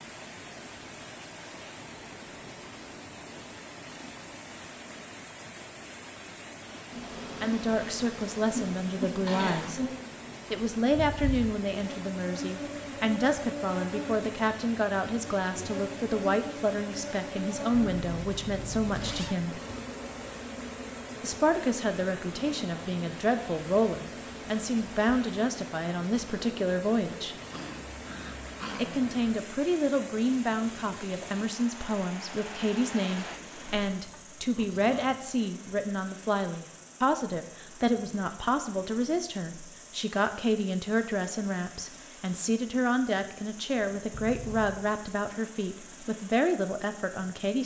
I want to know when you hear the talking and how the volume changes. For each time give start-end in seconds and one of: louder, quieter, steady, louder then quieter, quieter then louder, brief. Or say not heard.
7.4-9.8 brief
10.5-19.6 steady
21.2-27.4 steady
28.8-47.6 steady.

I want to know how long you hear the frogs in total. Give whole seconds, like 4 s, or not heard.
not heard.